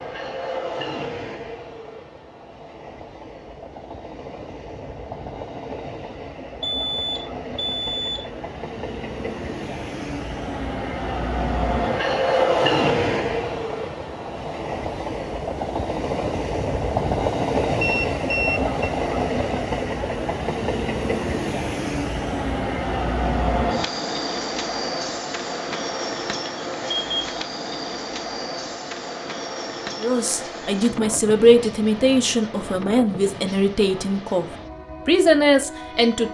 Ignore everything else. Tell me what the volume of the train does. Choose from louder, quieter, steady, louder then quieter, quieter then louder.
louder then quieter.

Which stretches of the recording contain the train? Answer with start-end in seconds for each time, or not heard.
0.0-36.2.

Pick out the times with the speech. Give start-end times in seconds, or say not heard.
30.0-34.5, 35.0-36.2.